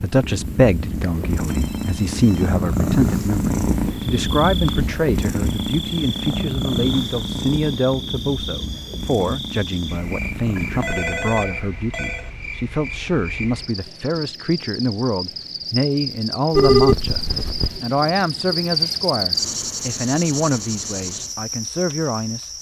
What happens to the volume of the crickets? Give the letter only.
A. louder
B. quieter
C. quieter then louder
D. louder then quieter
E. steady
A.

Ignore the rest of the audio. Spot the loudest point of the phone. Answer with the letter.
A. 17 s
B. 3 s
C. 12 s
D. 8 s
A.